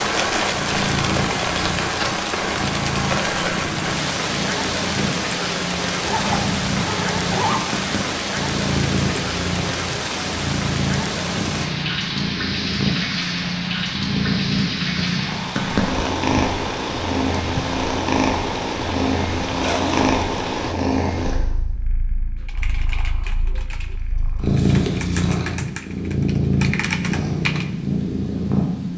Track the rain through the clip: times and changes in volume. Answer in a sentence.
You can hear the rain from 0.0 to 20.8 s, getting quieter.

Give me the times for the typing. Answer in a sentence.
You can hear the typing from 22.4 to 27.6 s.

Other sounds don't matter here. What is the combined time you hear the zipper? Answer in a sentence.
The zipper can be heard for 2 seconds in total.